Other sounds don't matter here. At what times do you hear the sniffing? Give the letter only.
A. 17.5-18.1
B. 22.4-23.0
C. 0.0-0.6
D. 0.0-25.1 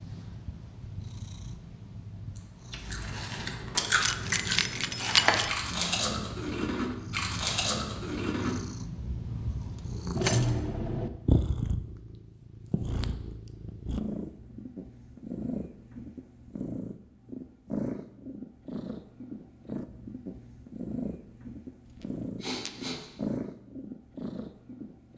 B.